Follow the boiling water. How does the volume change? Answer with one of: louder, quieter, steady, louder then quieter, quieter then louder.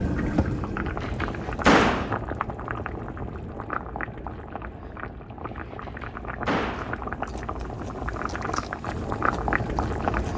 quieter then louder.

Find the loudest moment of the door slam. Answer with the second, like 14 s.
2 s.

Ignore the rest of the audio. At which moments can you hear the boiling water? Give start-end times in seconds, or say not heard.
0.0-10.3.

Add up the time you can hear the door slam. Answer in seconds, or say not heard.
2 s.